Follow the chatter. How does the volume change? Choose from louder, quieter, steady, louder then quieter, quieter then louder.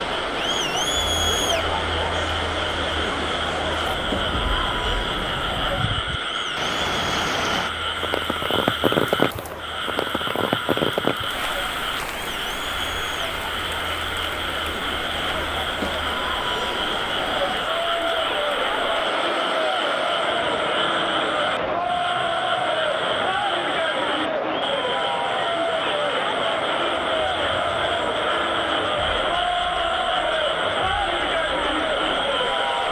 quieter then louder.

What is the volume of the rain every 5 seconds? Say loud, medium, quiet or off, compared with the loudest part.
medium, loud, loud, medium, quiet, quiet, quiet.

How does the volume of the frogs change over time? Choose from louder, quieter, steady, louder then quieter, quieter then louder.
steady.